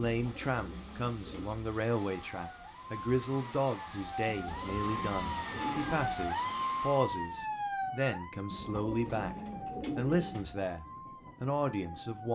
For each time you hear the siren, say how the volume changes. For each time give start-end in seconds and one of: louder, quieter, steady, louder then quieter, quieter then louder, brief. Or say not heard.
2.0-12.3 louder then quieter.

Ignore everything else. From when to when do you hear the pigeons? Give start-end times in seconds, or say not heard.
0.1-1.6, 4.2-6.2, 8.5-10.6.